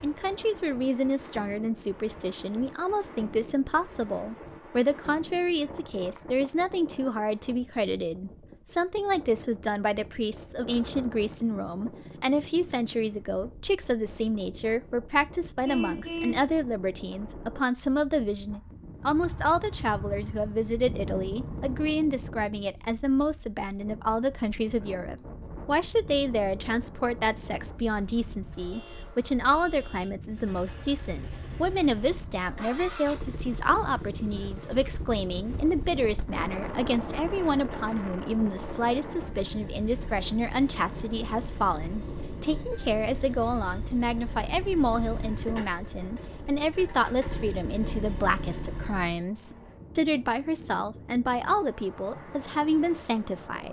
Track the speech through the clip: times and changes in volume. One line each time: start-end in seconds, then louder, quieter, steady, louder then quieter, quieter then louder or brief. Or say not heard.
0.0-53.6 steady.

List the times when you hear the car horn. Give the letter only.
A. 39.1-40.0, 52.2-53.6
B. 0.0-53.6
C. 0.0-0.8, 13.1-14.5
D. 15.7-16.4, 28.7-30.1
D.